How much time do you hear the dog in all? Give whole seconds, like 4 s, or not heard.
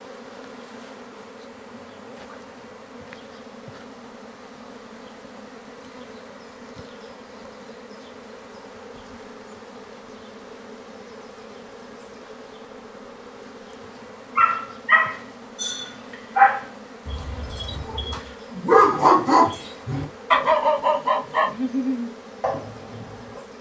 9 s.